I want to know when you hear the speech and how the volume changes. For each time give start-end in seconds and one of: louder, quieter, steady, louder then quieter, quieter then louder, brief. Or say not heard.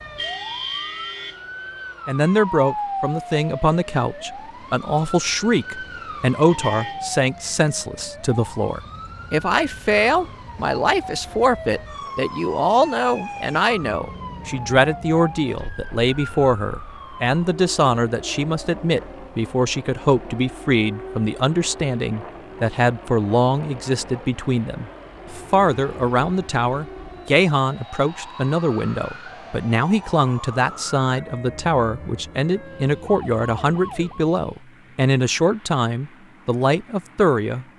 2.0-37.6 steady.